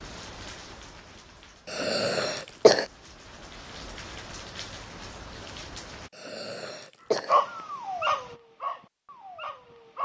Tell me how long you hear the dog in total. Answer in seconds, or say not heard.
3 s.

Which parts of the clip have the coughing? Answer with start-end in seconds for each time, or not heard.
1.6-2.9, 6.2-7.4.